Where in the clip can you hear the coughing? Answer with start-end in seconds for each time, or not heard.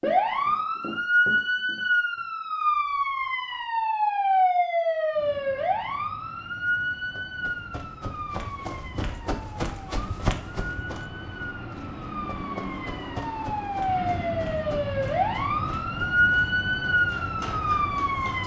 not heard.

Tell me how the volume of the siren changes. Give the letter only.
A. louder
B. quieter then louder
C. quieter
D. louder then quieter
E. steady
B.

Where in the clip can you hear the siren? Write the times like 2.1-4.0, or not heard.
0.0-18.4.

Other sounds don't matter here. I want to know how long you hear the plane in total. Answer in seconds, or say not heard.
13 s.